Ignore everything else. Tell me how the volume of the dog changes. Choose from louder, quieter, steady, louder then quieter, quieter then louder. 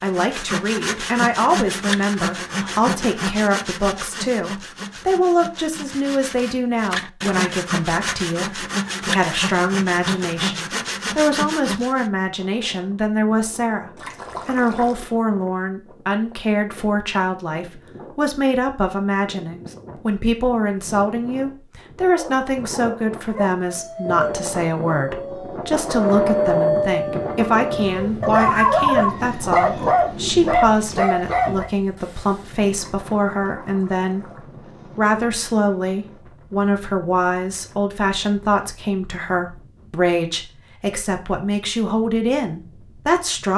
louder.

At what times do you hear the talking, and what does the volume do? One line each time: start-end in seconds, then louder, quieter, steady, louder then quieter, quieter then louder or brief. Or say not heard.
0.0-43.5 steady.